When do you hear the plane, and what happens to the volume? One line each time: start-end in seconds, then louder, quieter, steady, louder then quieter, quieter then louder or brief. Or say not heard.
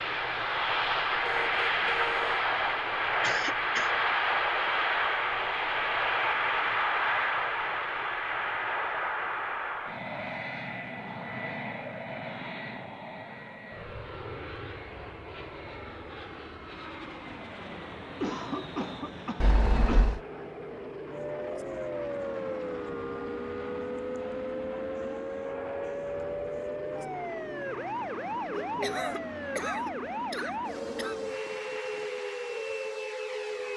0.0-33.7 quieter.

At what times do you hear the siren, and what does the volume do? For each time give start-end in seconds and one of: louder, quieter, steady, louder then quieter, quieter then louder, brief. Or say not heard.
21.1-33.7 steady.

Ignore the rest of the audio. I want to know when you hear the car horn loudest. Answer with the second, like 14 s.
20 s.